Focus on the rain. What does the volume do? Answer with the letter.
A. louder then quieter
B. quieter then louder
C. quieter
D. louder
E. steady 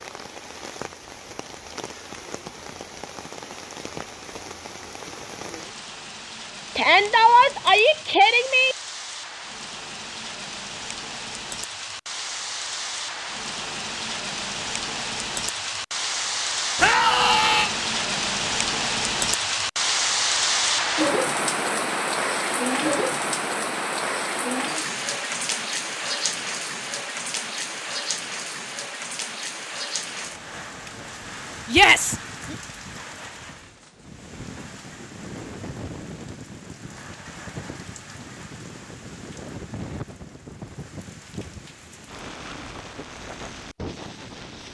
A.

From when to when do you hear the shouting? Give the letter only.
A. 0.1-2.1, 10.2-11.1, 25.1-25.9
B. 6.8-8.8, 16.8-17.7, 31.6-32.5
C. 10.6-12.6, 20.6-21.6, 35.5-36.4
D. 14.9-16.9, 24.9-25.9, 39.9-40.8
B.